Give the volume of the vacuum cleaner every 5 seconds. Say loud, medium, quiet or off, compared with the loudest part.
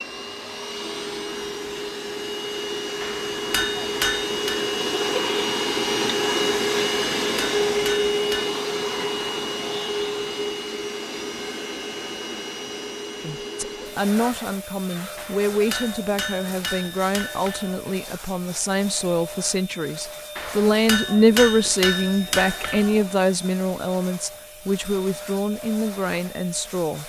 medium, loud, medium, quiet, quiet, quiet.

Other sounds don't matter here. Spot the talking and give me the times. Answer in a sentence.
You can hear the talking from 13.2 to 27.0 s.